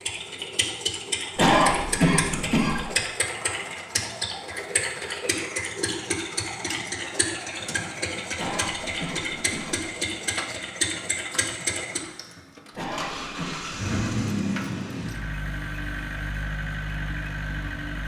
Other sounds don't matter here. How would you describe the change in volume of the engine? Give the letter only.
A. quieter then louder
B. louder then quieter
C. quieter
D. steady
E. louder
D.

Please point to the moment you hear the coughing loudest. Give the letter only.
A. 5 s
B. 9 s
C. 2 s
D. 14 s
C.